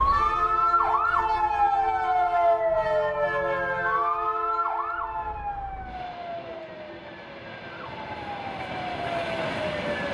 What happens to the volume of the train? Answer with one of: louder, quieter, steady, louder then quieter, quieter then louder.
quieter then louder.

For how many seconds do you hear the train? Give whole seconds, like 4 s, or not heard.
10 s.